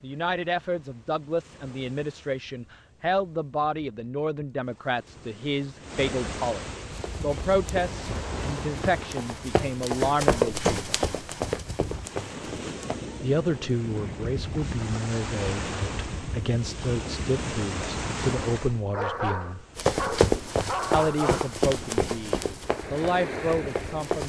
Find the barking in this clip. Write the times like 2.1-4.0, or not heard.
18.9-21.6.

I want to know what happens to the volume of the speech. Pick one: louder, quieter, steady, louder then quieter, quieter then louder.
steady.